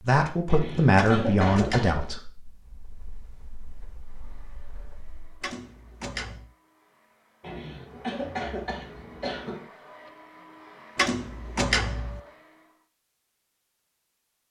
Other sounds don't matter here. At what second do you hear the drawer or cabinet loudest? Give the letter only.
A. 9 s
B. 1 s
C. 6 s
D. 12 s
D.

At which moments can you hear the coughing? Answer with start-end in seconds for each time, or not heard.
0.5-2.1, 7.4-9.7.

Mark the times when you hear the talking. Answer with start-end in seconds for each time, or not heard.
0.0-5.5.